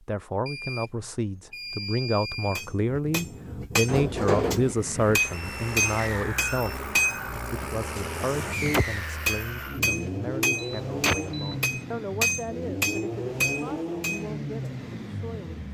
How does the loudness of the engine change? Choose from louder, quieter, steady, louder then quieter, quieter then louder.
steady.